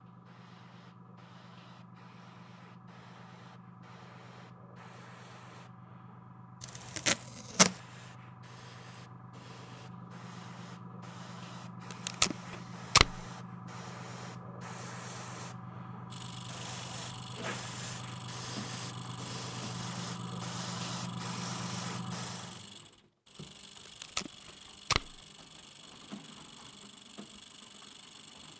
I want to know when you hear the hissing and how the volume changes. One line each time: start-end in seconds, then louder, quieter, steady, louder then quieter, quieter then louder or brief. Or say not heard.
0.0-22.6 louder.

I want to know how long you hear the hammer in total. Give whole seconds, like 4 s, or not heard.
not heard.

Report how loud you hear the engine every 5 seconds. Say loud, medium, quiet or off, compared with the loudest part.
off, off, off, loud, loud, loud.